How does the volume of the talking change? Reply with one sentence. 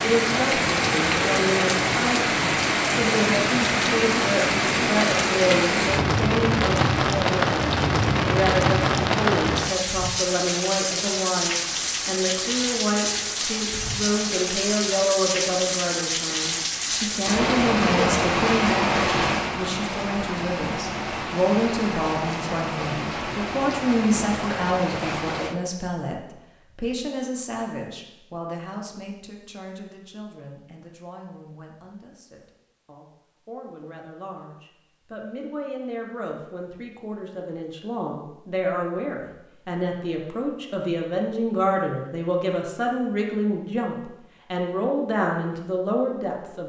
The volume of the talking goes down, then up.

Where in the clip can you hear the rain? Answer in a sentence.
The rain can be heard from 0.0 to 25.6 s.